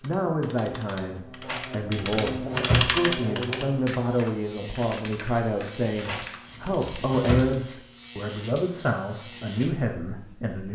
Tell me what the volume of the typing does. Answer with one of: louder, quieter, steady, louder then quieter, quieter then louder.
louder then quieter.